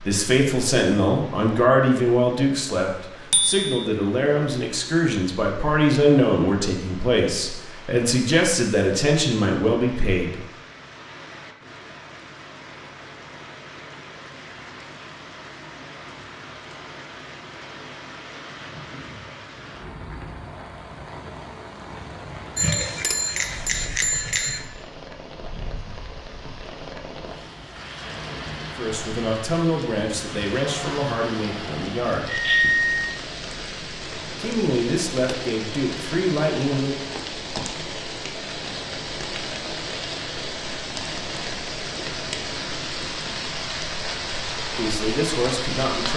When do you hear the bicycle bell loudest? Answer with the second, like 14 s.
33 s.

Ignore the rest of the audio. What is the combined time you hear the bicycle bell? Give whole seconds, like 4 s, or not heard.
3 s.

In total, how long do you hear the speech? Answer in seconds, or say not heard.
18 s.